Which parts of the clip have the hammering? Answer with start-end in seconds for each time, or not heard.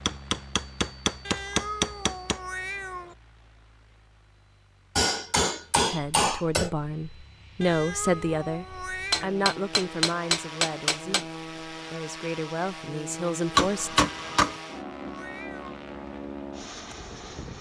0.1-2.4, 5.0-6.7, 9.1-11.2, 13.6-14.6.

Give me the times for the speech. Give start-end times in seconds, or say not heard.
5.8-14.0.